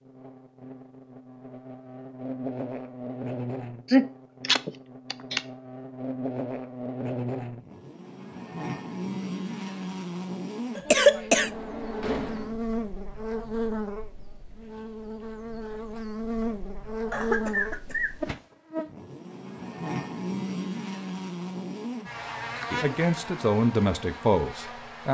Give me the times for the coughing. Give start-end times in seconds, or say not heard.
3.9-5.4, 10.8-11.5, 17.1-18.4.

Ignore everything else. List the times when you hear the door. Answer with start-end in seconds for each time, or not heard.
11.3-12.6.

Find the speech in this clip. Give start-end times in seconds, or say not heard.
22.7-25.0.